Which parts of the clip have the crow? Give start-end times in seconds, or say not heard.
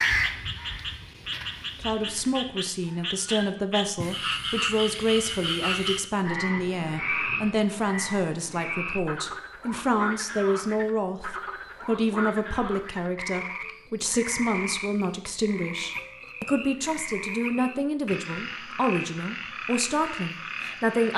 0.0-3.5.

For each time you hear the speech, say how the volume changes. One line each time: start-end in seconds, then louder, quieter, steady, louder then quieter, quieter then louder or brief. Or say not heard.
1.8-21.1 steady.